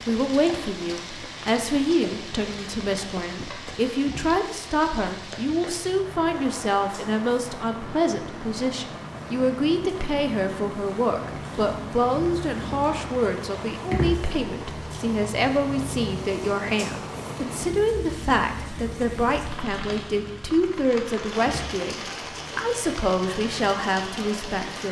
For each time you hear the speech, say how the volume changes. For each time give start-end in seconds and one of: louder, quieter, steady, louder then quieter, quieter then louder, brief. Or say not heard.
0.0-24.8 steady.